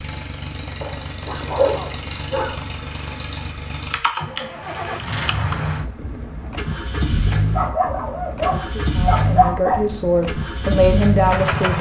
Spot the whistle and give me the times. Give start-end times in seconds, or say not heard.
not heard.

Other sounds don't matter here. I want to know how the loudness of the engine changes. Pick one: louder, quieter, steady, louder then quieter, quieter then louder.
louder.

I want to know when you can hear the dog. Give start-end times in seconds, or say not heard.
0.8-3.2, 7.5-9.8.